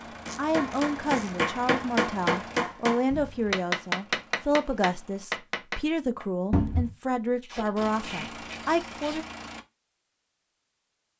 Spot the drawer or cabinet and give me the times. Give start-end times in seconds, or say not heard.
3.1-3.5, 6.5-6.9.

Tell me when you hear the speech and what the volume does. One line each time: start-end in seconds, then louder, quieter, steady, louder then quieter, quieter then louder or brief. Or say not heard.
0.3-9.2 steady.